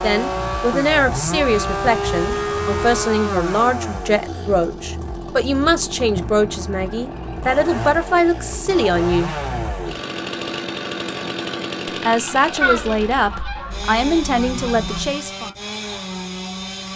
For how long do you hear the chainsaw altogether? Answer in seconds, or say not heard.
17 s.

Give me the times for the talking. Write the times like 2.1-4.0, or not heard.
0.0-9.3, 12.0-15.5.